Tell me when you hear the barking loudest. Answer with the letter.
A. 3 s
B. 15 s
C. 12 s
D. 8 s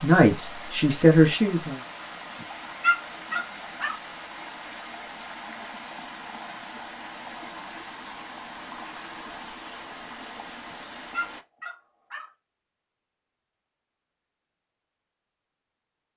A.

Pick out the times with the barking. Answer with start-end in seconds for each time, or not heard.
2.4-4.0, 10.7-12.3.